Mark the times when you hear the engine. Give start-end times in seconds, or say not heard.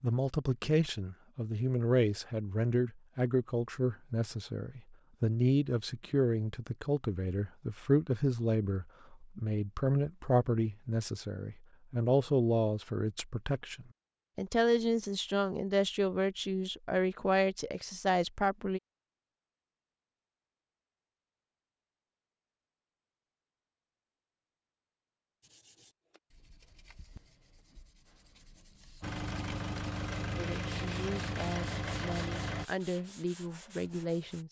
29.0-32.6.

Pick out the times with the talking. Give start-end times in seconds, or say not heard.
0.0-18.8, 30.4-34.4.